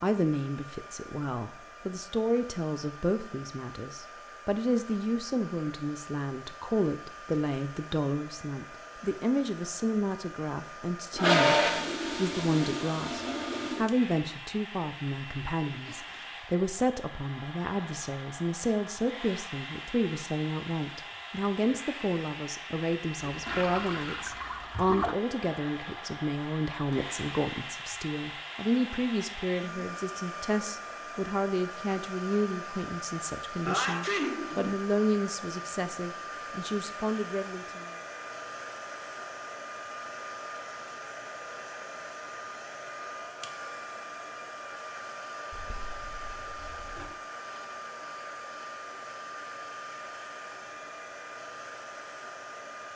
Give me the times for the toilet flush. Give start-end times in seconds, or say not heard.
11.2-13.9, 23.2-25.1, 45.5-47.1.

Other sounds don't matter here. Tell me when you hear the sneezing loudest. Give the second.
34 s.